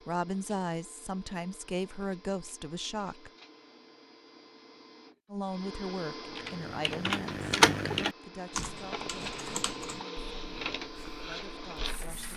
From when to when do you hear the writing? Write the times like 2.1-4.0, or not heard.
not heard.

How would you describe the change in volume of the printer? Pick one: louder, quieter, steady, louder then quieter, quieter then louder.
louder.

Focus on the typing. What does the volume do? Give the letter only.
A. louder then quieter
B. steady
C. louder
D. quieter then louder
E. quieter
A.